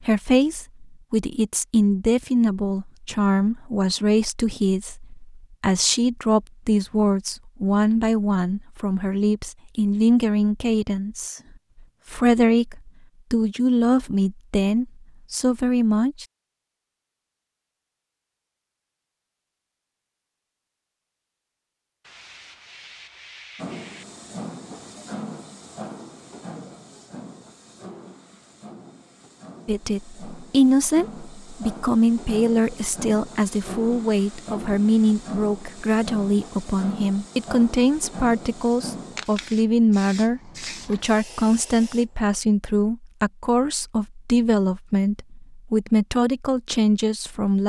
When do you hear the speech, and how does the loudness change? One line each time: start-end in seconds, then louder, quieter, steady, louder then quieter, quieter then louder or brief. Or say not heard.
0.0-11.4 steady
12.1-16.2 steady
29.6-47.6 steady.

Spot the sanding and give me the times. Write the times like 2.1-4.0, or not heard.
22.0-24.1.